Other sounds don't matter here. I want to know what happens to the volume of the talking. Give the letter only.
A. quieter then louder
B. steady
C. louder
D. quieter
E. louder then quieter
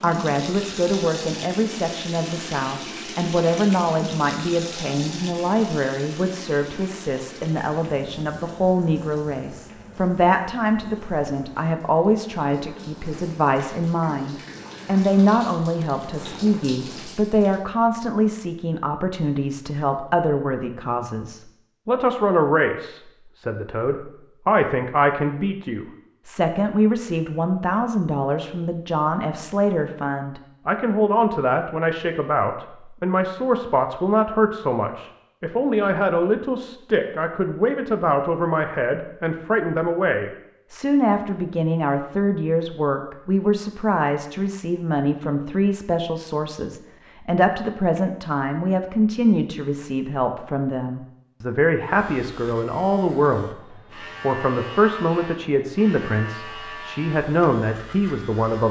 B.